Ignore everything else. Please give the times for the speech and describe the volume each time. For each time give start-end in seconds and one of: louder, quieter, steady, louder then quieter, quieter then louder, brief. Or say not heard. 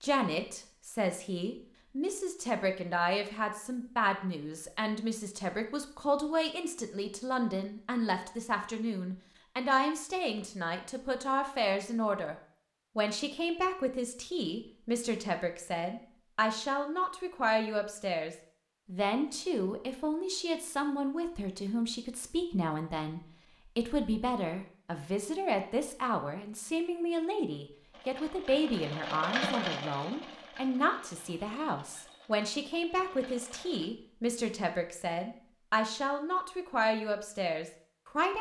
0.0-12.3 steady
12.9-38.3 steady.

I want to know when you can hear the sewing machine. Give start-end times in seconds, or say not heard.
27.9-33.9.